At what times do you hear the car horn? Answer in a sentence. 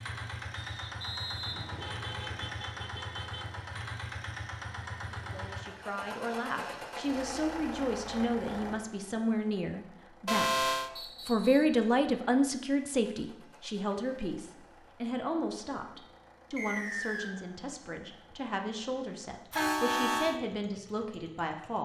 The car horn can be heard from 1.4 to 3.5 s, from 10.2 to 10.9 s and from 19.5 to 20.4 s.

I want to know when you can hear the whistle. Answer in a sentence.
The whistle can be heard from 0.6 to 2.5 s, from 10.9 to 11.8 s and from 16.6 to 17.4 s.